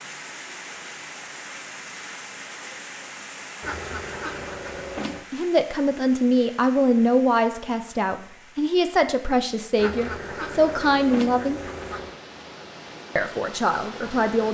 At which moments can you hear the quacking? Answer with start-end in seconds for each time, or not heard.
3.6-5.2, 9.8-12.2.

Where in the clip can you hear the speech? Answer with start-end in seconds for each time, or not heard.
5.3-11.6, 13.2-14.4.